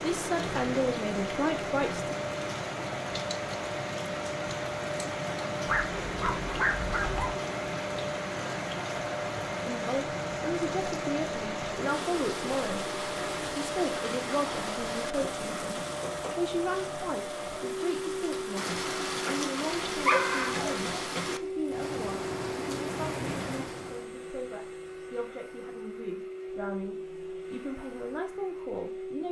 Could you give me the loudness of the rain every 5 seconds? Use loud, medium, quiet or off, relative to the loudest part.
loud, loud, loud, loud, loud, off.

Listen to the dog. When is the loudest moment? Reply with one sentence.
The volume of the dog peaks at 20 seconds.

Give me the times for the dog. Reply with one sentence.
The dog can be heard from 5.7 to 7.3 s and from 19.7 to 20.8 s.